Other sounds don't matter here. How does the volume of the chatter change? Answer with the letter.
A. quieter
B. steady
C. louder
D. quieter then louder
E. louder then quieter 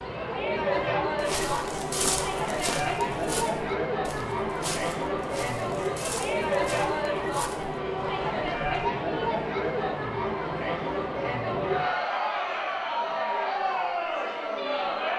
B.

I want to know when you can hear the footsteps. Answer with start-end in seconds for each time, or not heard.
1.2-8.9.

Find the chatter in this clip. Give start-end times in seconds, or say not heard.
0.0-15.1.